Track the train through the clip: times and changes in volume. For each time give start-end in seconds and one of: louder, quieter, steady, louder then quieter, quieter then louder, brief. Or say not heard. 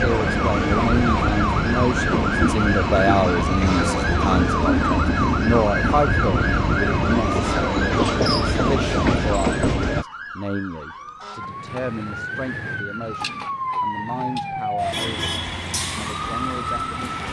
0.0-10.1 steady.